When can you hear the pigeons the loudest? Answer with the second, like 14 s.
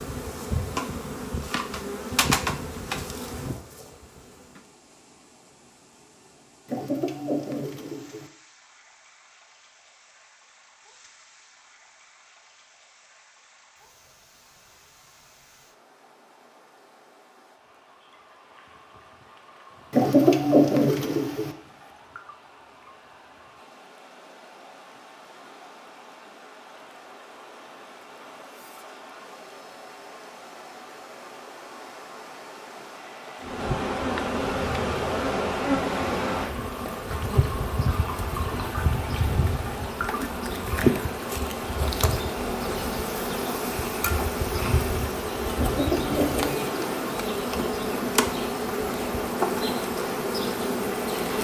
20 s.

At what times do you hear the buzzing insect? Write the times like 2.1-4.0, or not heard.
0.0-4.6, 33.4-51.3.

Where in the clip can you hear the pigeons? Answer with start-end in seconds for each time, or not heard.
6.7-8.3, 19.9-21.5, 45.5-47.1.